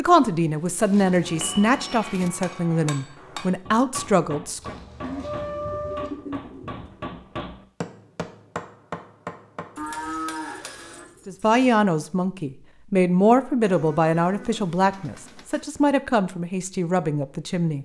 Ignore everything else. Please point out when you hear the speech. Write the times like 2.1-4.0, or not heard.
0.0-4.8, 11.2-17.8.